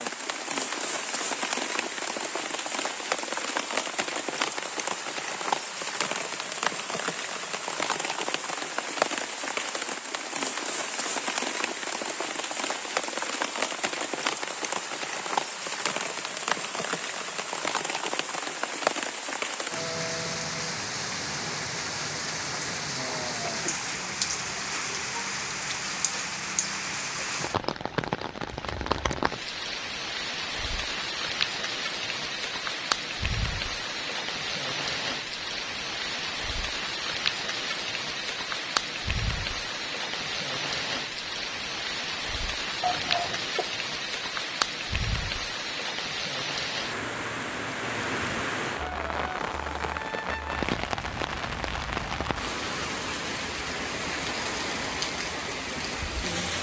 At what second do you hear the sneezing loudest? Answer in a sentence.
The volume of the sneezing peaks at 43 seconds.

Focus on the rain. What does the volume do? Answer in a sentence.
The volume of the rain stays about the same.